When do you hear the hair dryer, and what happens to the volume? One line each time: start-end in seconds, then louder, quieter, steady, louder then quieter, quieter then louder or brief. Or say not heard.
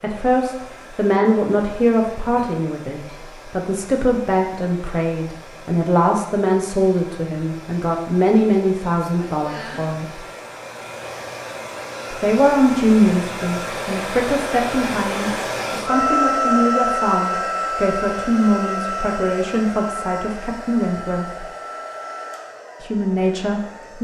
0.0-23.9 louder then quieter.